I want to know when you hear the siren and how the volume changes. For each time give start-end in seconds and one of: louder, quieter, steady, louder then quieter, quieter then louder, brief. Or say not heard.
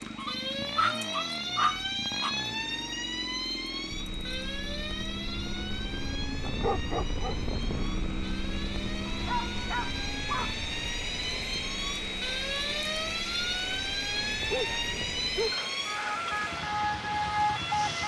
0.0-18.0 quieter then louder.